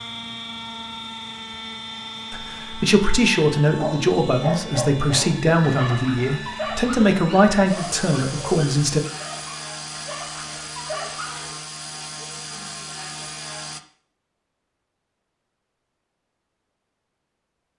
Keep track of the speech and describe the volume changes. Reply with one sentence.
The volume of the speech stays about the same.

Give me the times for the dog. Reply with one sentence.
You can hear the dog from 3.7 to 11.7 s.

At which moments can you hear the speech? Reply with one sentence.
The speech can be heard from 2.3 to 9.0 s.